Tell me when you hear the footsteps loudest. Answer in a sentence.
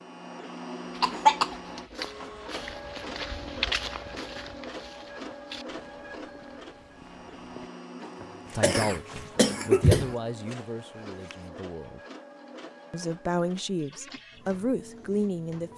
The loudest moment of the footsteps is at 4 seconds.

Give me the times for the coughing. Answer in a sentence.
The coughing can be heard from 1.0 to 1.6 s and from 8.2 to 10.2 s.